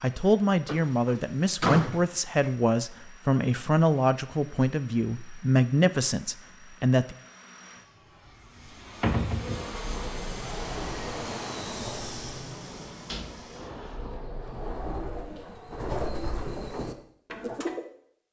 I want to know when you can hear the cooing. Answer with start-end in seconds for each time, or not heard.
9.1-17.9.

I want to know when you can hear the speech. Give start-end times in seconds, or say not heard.
0.0-7.2.